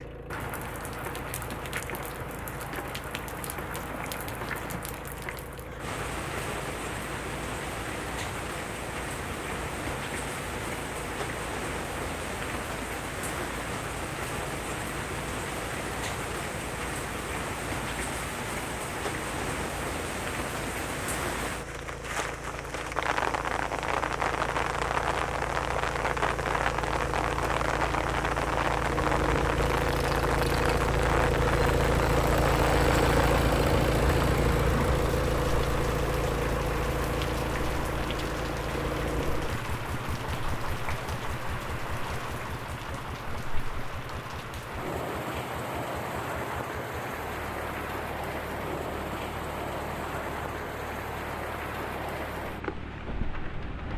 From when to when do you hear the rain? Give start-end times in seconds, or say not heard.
0.0-53.9.